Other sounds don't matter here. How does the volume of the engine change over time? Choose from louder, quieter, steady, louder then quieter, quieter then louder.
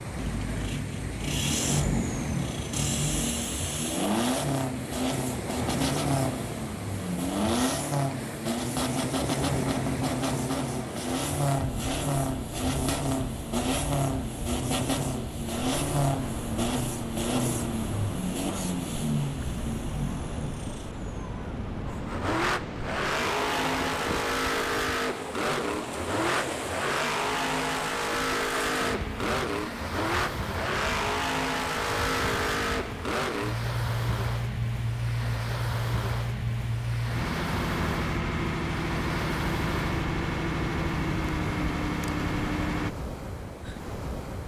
steady.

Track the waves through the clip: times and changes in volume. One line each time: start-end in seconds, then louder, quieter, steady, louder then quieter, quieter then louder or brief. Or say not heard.
0.0-44.4 steady.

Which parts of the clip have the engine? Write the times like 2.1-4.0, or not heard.
0.0-42.9.